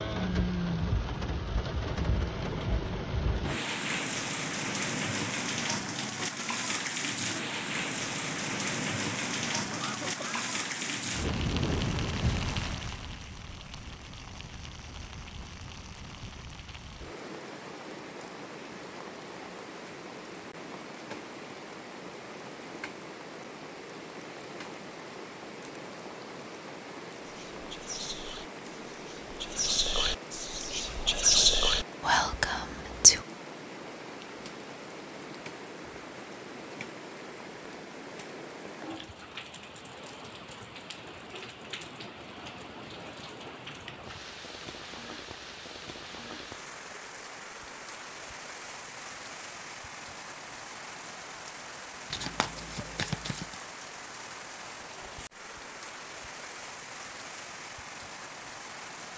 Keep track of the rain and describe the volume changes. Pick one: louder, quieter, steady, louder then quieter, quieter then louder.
quieter.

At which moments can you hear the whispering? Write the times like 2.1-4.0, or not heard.
27.2-33.2.